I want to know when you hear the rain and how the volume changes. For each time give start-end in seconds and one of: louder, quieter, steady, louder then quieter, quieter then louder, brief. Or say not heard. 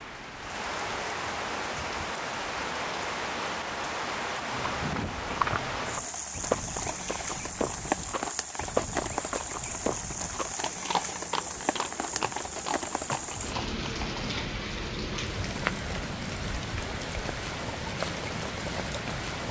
0.0-19.4 steady.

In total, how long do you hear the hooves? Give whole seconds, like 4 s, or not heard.
10 s.